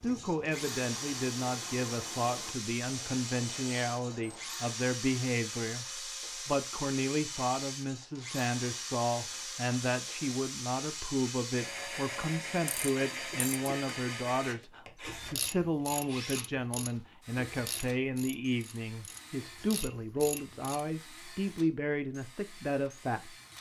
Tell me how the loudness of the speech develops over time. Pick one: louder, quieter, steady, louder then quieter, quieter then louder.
steady.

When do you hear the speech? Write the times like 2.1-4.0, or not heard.
0.0-5.8, 6.5-23.3.